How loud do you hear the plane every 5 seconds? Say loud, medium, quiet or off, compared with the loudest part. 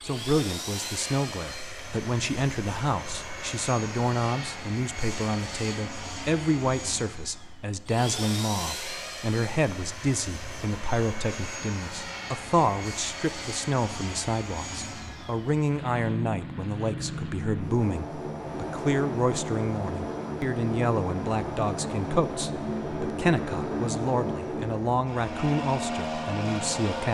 medium, medium, medium, loud, loud, loud.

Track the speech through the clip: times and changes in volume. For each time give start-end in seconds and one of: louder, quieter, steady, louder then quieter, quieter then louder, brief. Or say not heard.
0.0-27.1 steady.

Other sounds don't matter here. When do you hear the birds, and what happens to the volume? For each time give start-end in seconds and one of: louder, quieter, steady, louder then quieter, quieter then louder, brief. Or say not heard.
not heard.